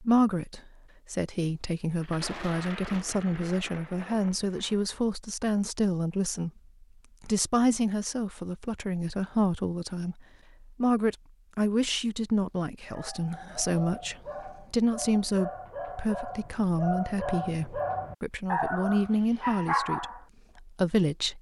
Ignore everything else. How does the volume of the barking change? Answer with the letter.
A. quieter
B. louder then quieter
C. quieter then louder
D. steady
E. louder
E.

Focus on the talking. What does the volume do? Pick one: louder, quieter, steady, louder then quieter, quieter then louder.
steady.